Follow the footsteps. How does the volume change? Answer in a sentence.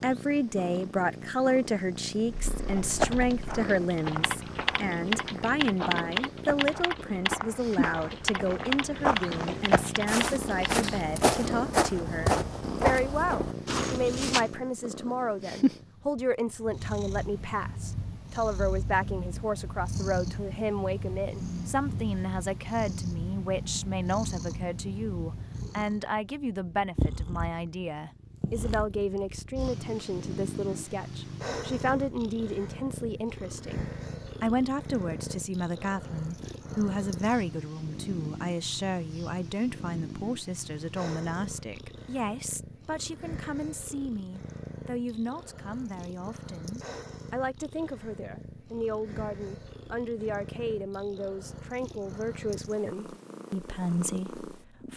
The volume of the footsteps goes up.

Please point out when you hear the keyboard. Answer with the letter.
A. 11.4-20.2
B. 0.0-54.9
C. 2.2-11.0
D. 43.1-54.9
C.